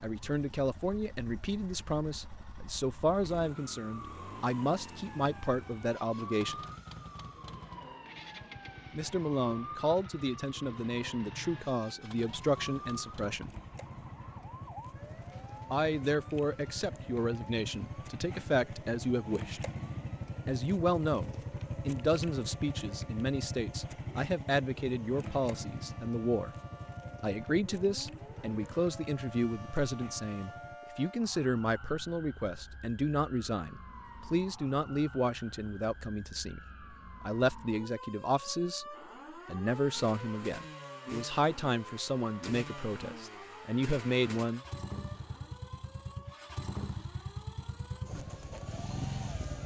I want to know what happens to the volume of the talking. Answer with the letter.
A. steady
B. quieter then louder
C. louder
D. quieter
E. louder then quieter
A.